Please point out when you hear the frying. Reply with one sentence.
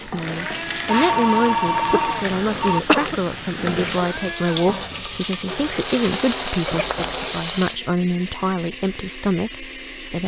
You can hear the frying from 0.0 to 7.8 s.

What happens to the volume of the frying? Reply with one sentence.
The volume of the frying stays about the same.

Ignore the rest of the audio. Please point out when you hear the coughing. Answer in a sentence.
You can hear the coughing from 1.9 to 3.2 s.